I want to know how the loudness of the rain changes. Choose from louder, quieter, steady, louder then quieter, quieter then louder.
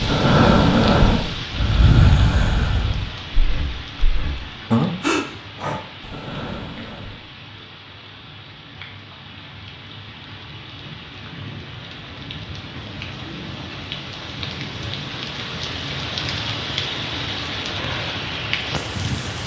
quieter then louder.